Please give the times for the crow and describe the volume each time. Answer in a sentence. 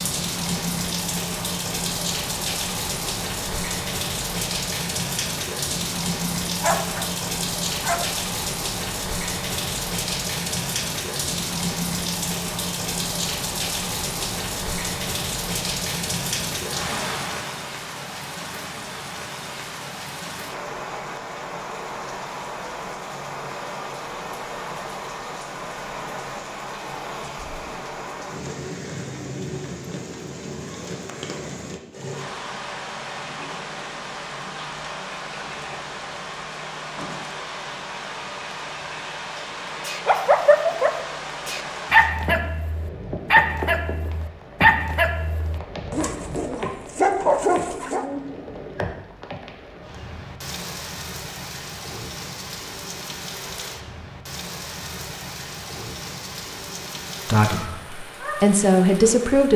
The crow can't be heard in this clip.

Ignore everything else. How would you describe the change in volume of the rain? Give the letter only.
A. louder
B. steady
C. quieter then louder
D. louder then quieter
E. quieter
E.